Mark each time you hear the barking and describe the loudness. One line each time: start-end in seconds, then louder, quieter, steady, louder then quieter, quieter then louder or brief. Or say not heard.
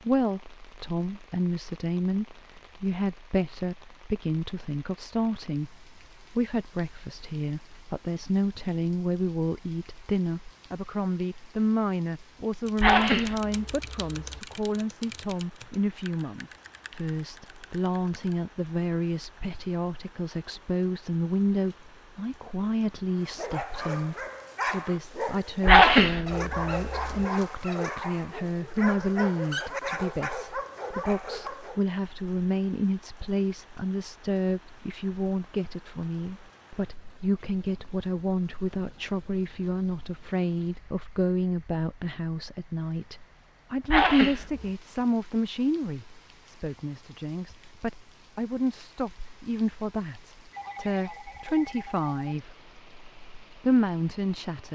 23.1-31.8 steady.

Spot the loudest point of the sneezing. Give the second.
26 s.